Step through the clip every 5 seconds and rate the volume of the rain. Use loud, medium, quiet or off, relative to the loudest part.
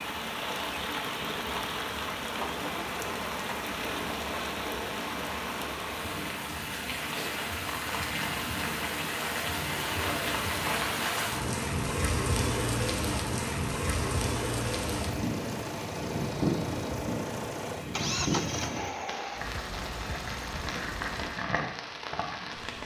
medium, loud, loud, loud, medium.